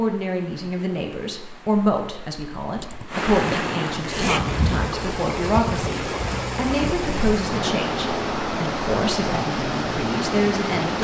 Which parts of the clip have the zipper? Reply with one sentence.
The zipper can be heard from 2.8 to 4.8 s.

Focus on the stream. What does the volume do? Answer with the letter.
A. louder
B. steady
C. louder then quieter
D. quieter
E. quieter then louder
A.